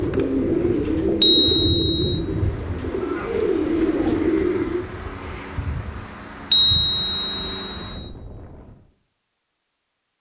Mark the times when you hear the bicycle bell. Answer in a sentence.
The bicycle bell can be heard from 1.2 to 2.2 s and from 6.5 to 8.1 s.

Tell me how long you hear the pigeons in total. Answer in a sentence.
The pigeons can be heard for 5 seconds in total.